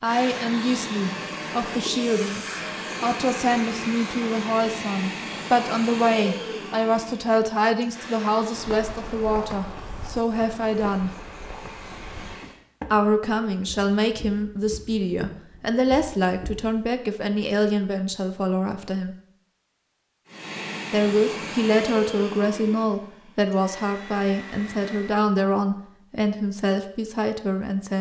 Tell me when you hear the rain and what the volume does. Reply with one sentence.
You can't hear the rain here.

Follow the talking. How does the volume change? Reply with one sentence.
The loudness of the talking stays about the same.